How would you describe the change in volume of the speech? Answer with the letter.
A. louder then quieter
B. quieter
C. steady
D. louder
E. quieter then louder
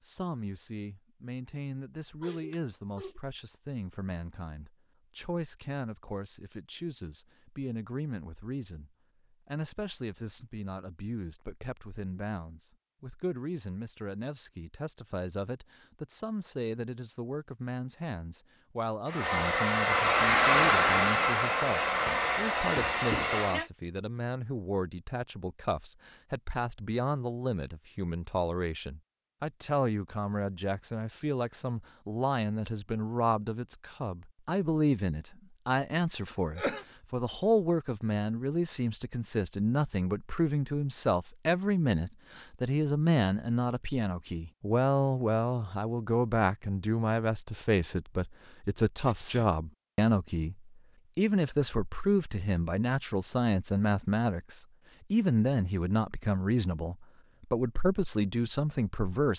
D.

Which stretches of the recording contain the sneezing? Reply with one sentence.
You can hear the sneezing from 2.2 to 3.2 s, from 36.2 to 36.9 s and from 49.0 to 49.5 s.